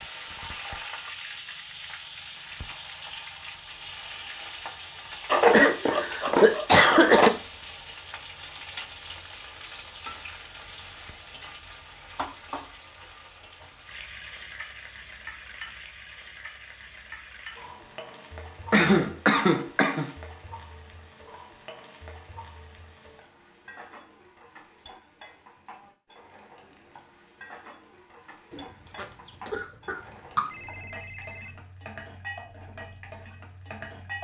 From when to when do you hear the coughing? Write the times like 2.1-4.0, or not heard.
5.2-7.3, 18.7-20.1, 28.5-30.4.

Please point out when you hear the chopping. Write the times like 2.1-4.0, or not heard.
not heard.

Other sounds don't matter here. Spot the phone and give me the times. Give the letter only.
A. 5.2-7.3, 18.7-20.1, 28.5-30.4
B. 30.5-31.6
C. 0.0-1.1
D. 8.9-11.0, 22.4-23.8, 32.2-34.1
B.